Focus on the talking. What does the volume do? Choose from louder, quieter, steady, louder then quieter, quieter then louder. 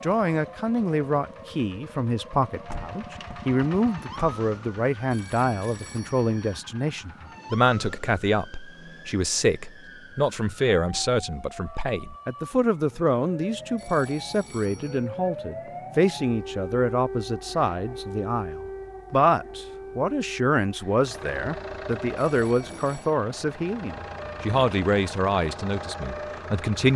steady.